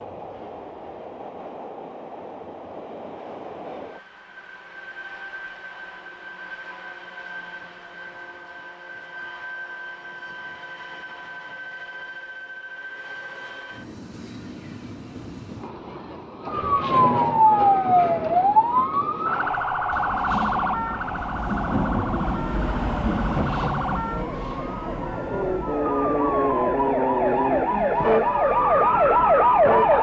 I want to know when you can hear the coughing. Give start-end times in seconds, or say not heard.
not heard.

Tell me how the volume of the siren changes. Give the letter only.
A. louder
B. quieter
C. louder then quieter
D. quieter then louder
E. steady
D.